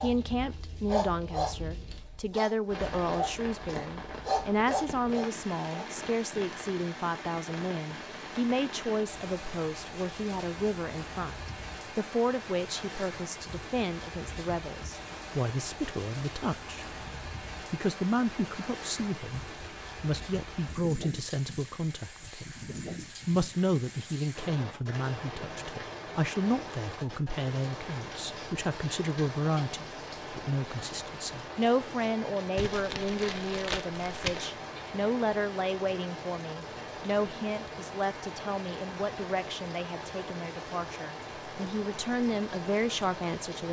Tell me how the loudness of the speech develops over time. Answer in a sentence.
The volume of the speech stays about the same.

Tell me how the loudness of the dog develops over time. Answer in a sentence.
The loudness of the dog stays about the same.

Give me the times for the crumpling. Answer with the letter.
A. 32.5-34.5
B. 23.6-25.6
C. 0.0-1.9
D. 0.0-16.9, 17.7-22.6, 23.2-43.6
A.